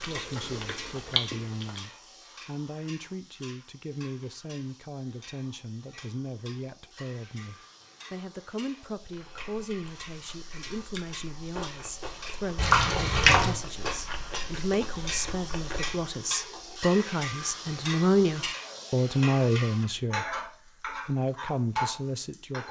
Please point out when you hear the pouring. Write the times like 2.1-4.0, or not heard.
12.6-13.6.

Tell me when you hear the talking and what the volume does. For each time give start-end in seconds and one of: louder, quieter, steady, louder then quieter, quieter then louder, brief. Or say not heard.
0.1-22.6 louder.